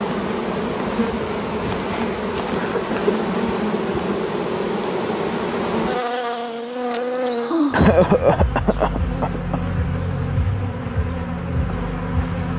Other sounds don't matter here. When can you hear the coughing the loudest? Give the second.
8 s.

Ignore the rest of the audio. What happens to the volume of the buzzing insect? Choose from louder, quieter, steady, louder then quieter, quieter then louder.
steady.